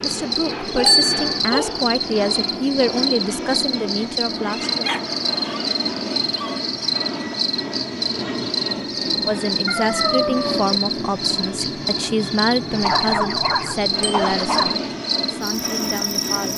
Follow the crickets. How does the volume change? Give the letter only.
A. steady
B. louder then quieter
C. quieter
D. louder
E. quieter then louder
A.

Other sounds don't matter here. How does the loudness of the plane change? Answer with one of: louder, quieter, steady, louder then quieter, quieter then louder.
steady.